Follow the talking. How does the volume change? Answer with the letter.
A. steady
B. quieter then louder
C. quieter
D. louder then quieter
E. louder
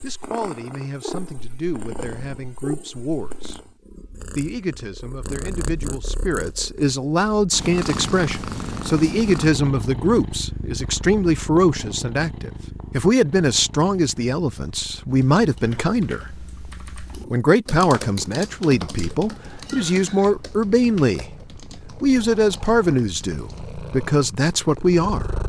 E.